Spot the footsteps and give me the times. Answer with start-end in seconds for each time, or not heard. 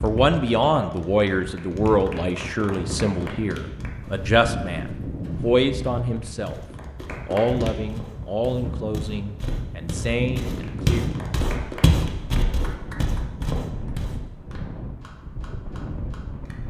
4.0-14.2.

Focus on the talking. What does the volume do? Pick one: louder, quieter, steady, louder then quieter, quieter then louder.
quieter.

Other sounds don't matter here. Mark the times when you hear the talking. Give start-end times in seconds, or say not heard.
0.0-6.6, 7.2-11.1.